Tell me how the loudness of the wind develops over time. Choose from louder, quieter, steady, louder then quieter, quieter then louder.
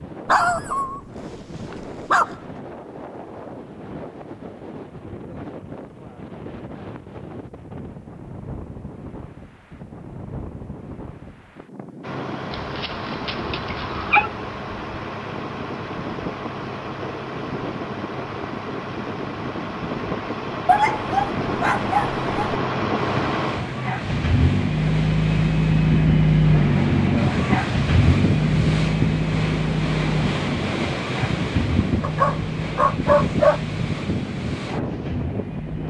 louder.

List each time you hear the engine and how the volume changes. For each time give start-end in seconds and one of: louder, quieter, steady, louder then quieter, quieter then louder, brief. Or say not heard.
12.0-35.8 louder then quieter.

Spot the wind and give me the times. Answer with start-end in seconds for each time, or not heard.
0.0-35.8.